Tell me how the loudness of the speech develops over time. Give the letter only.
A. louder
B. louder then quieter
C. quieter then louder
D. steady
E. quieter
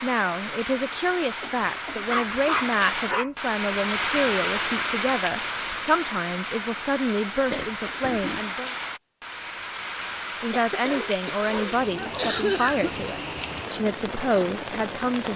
D.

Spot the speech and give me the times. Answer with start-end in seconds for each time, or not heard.
0.0-8.7, 10.4-15.3.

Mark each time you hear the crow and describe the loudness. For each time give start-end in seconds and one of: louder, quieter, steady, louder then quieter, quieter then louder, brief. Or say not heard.
not heard.